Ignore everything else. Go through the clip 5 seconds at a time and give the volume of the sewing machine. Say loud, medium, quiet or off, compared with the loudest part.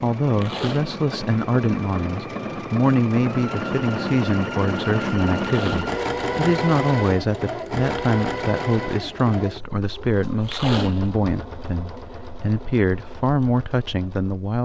loud, loud, quiet.